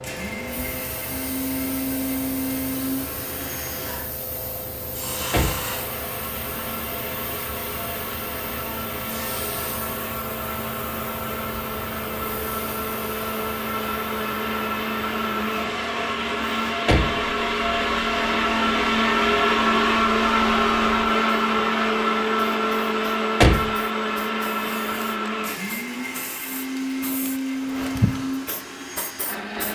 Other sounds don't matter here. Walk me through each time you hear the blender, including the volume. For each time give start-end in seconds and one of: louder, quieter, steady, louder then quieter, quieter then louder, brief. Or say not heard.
0.0-29.7 louder then quieter.